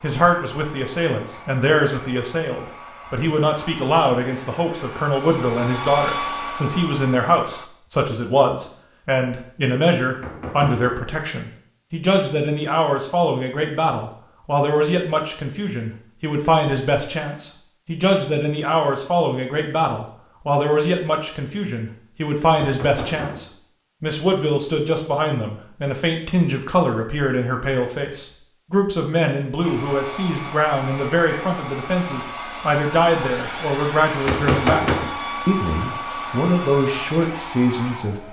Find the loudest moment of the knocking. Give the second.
35 s.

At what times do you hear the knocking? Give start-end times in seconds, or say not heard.
10.2-10.8, 22.6-23.4, 34.2-35.1.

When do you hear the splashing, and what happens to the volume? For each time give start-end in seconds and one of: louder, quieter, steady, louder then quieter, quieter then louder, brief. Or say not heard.
not heard.